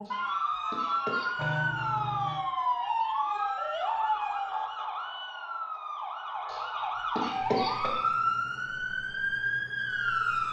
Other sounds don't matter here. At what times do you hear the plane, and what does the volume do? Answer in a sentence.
You can't hear the plane here.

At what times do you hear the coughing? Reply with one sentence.
You can hear the coughing from 0.1 to 1.8 s and from 6.5 to 8.0 s.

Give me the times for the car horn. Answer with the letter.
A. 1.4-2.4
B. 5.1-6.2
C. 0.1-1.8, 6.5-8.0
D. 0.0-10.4
A.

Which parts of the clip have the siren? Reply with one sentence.
The siren can be heard from 0.0 to 10.4 s.